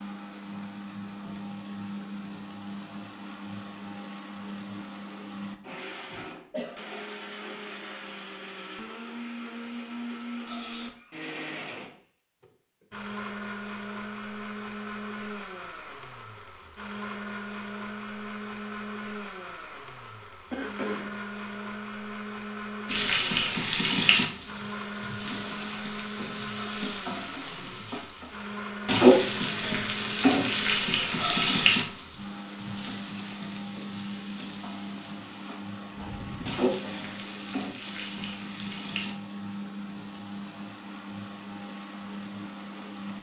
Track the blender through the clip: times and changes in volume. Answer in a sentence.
The blender can be heard from 0.0 to 43.1 s, at a steady volume.